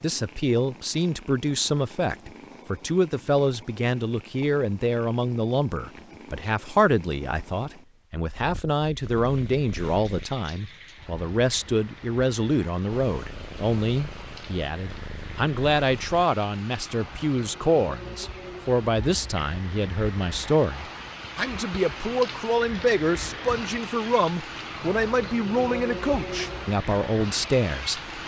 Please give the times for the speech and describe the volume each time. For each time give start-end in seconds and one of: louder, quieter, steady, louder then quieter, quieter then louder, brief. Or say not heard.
0.0-28.1 steady.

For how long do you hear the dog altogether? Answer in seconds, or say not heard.
not heard.